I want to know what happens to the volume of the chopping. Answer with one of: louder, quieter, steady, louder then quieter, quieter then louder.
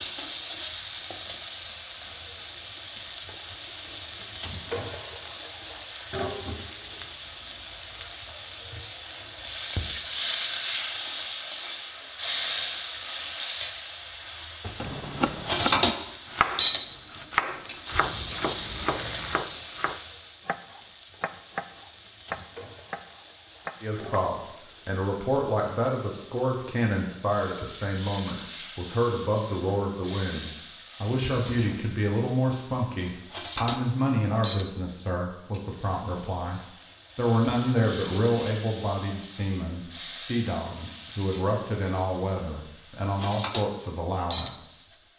quieter.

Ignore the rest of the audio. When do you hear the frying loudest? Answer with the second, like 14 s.
16 s.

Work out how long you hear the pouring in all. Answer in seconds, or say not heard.
2 s.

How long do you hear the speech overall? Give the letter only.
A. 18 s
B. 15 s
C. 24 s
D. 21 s
D.